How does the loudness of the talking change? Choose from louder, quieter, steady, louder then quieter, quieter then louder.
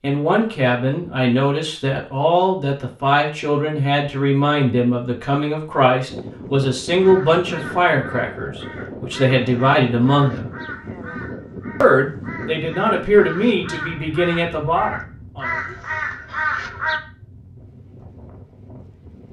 steady.